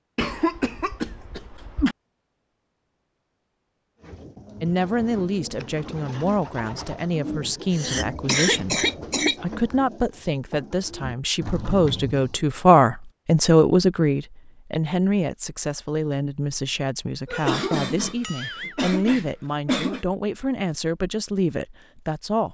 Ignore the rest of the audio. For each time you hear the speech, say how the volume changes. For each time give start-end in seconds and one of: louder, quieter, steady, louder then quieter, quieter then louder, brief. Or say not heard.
4.6-22.4 louder then quieter.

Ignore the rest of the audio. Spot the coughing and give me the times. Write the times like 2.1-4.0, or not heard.
0.1-1.9, 7.7-9.3, 17.2-20.1.